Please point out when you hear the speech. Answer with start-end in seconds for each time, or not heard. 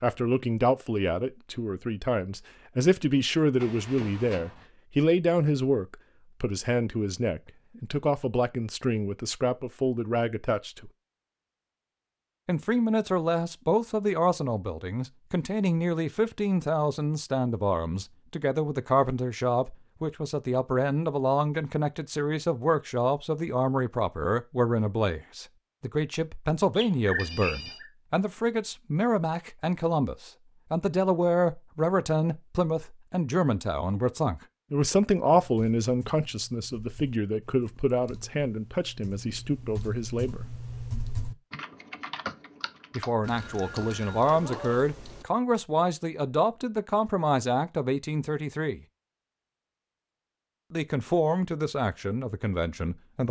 0.0-10.9, 12.4-40.5, 43.0-48.8, 50.7-53.2.